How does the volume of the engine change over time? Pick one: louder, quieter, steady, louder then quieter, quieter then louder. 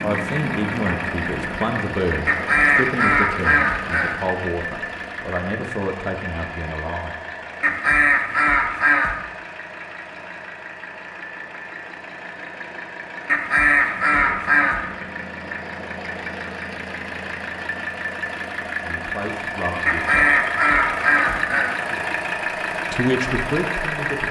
quieter then louder.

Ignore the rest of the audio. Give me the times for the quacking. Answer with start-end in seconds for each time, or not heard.
2.2-4.2, 7.6-9.2, 13.2-14.8, 19.9-21.8.